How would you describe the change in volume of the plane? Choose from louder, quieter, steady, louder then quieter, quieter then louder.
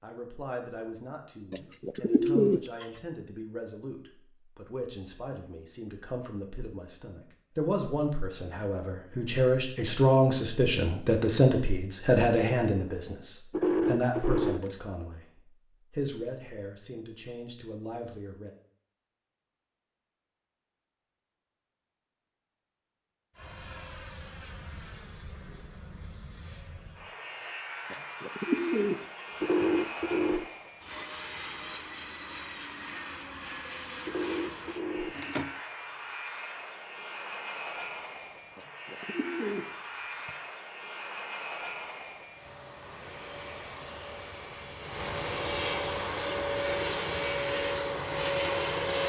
louder.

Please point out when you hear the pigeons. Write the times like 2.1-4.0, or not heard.
1.5-2.9, 27.9-29.6, 38.5-40.3.